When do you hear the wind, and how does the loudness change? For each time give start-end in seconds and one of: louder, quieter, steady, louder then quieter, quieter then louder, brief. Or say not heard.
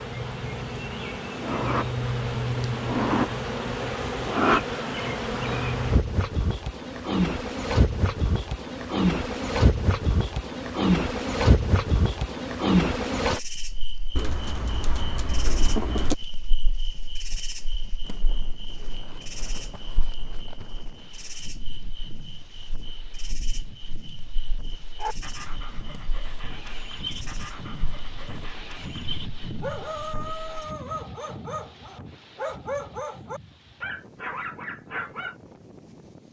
18.0-36.2 louder then quieter.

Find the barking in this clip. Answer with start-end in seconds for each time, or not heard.
24.9-35.4.